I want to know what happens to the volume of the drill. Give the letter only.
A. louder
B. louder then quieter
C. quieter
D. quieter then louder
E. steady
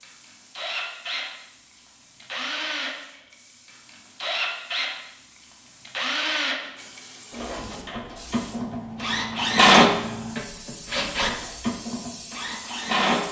B.